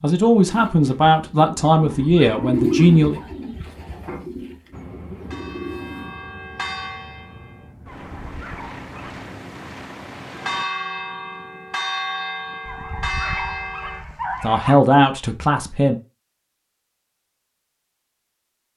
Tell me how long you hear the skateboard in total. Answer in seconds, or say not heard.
not heard.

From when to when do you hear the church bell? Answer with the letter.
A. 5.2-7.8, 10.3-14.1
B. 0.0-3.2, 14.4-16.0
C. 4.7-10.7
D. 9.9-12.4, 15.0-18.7
A.